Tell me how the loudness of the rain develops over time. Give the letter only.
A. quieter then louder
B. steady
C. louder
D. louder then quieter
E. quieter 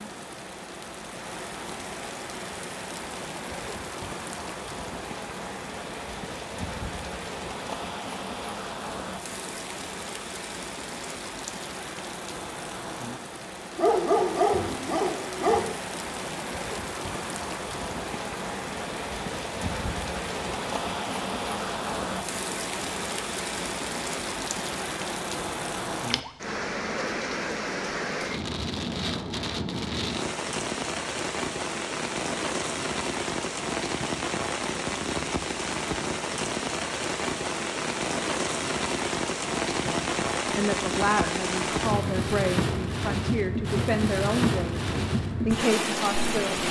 C.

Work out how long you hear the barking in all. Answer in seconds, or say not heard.
2 s.